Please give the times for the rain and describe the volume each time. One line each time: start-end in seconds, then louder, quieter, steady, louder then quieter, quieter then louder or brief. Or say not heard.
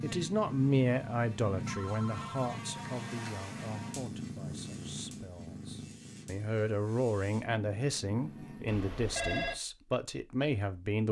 not heard.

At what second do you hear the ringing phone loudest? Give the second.
9 s.